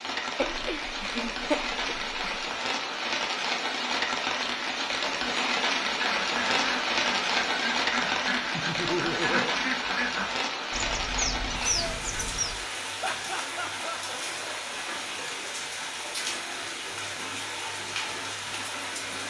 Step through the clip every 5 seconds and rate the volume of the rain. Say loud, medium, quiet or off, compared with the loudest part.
loud, loud, medium, medium.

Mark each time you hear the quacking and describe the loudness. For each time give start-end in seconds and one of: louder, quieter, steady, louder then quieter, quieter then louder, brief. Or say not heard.
5.8-12.7 steady.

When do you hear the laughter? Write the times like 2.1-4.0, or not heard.
0.3-2.5, 8.5-9.6, 13.0-14.0.